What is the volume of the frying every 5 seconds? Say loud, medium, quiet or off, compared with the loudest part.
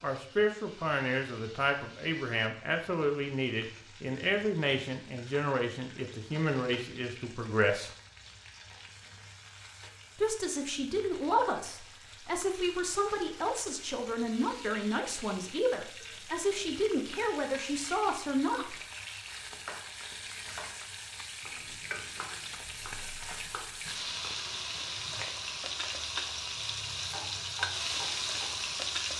quiet, quiet, quiet, medium, medium, loud.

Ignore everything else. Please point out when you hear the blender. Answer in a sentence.
The blender can't be heard in this clip.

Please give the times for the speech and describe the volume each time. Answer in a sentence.
The speech can be heard from 0.0 to 7.9 s, at a steady volume; and from 10.2 to 18.8 s, at a steady volume.